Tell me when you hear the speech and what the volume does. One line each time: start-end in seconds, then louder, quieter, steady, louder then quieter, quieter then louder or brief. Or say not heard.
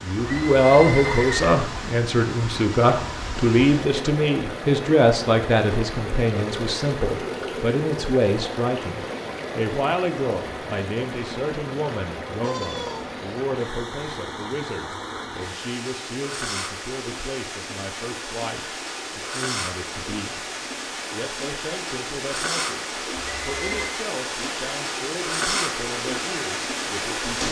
0.0-20.4 quieter
21.1-27.4 steady.